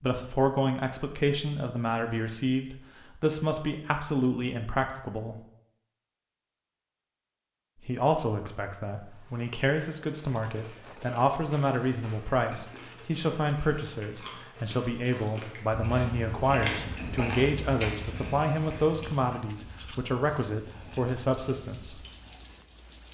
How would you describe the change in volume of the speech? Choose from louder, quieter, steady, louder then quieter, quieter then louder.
steady.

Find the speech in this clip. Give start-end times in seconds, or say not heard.
0.0-5.4, 7.8-22.1.